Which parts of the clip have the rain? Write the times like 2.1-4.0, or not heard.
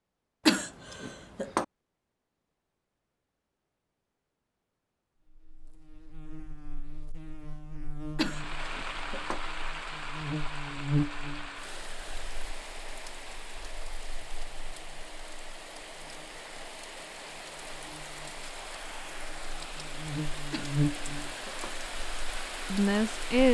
8.2-23.5.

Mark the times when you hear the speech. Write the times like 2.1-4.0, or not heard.
22.7-23.5.